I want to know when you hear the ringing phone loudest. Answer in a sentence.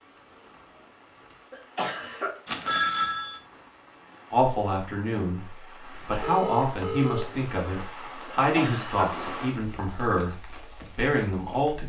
The volume of the ringing phone peaks at 3 seconds.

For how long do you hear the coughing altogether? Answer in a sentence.
The coughing can be heard for 2 seconds in total.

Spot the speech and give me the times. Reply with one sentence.
You can hear the speech from 4.3 to 11.8 s.